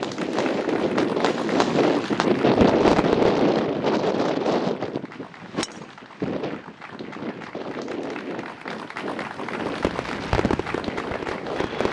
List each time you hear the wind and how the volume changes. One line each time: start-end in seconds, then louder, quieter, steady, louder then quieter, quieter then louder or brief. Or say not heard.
0.0-11.8 quieter.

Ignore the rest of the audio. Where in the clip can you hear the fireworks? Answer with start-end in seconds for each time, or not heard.
0.0-3.5, 9.7-11.8.